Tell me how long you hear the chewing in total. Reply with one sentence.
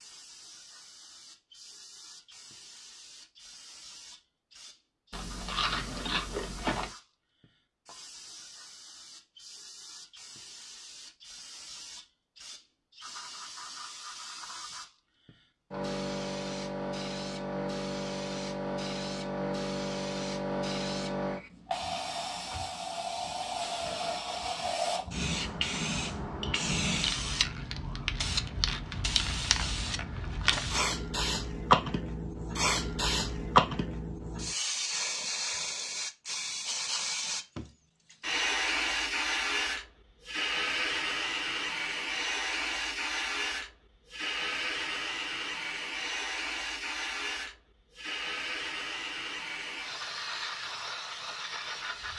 You can hear the chewing for 2 seconds altogether.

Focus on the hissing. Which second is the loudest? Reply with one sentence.
The volume of the hissing peaks at 33 seconds.